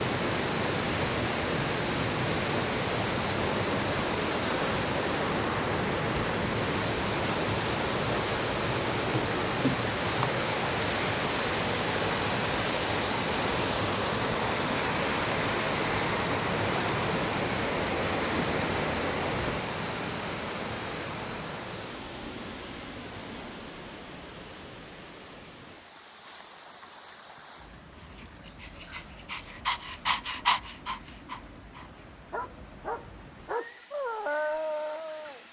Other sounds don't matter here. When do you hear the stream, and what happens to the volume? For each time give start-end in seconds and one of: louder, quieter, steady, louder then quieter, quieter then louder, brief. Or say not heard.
0.0-35.4 quieter.